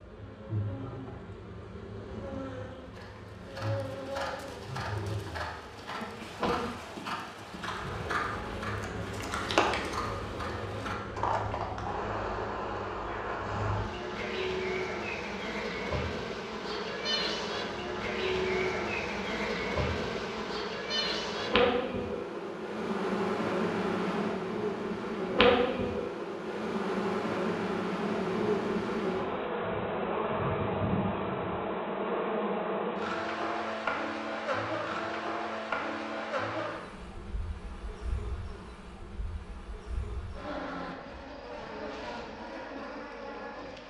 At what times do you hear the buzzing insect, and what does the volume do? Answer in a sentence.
The buzzing insect can be heard from 0.0 to 43.8 s, getting louder then quieter.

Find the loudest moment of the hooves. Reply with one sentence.
The loudest moment of the hooves is at 10 seconds.